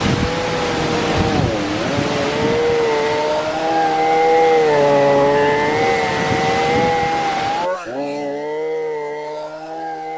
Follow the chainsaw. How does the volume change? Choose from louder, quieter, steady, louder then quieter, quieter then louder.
louder then quieter.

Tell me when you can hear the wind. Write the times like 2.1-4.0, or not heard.
0.0-7.7.